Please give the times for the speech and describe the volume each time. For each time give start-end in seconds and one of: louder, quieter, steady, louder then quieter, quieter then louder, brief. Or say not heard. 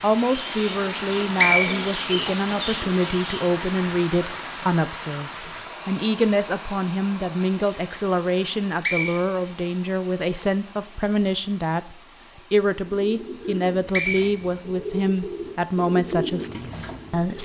0.0-17.3 steady.